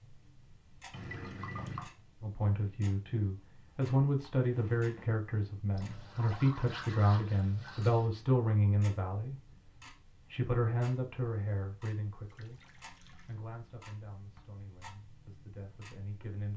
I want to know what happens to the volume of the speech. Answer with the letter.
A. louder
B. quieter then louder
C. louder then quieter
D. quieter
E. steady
D.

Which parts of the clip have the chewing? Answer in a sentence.
The chewing can't be heard in this clip.